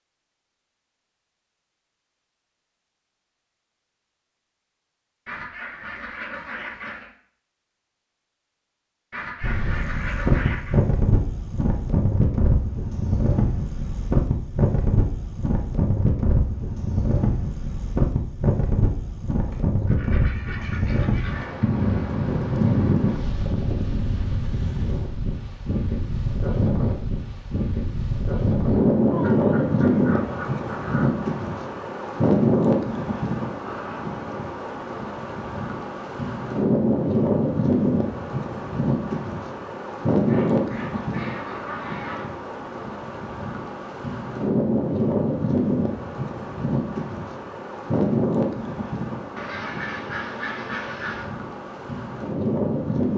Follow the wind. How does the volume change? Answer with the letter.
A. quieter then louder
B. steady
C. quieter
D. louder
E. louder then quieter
B.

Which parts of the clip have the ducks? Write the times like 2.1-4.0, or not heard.
5.2-7.1, 9.1-10.8, 19.4-21.6, 29.1-31.1, 40.2-42.2, 49.4-51.3.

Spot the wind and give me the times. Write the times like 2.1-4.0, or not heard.
9.4-53.1.